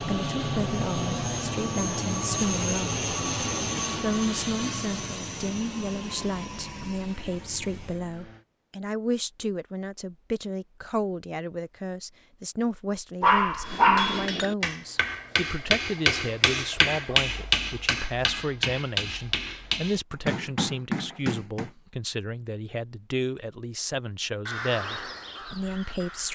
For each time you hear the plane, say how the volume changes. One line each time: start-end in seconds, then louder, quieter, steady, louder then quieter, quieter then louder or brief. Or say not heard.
0.0-8.4 quieter.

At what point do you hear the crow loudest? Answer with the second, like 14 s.
25 s.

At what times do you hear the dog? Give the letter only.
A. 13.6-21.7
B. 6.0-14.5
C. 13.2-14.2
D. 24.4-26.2
C.